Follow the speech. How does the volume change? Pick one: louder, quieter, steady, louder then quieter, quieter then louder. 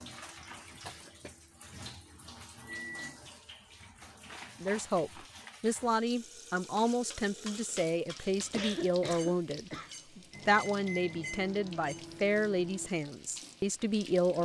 steady.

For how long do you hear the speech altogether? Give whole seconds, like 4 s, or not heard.
10 s.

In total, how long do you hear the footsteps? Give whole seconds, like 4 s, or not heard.
not heard.